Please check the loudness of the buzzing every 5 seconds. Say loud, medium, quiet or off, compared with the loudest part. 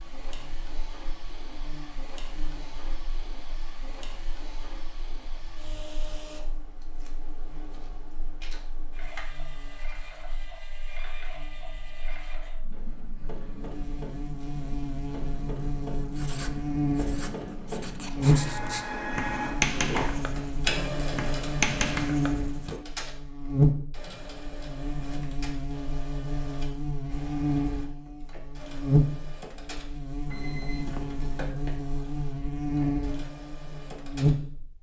quiet, quiet, quiet, loud, loud, loud, loud.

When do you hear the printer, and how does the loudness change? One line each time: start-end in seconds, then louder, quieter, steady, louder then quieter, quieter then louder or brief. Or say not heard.
0.0-34.5 louder then quieter.